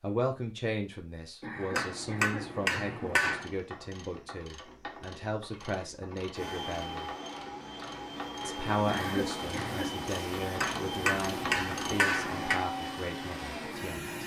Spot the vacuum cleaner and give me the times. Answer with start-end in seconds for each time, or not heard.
6.3-14.2.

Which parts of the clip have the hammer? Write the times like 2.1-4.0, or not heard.
1.8-3.5, 10.6-12.6.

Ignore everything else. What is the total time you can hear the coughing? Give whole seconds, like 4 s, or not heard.
3 s.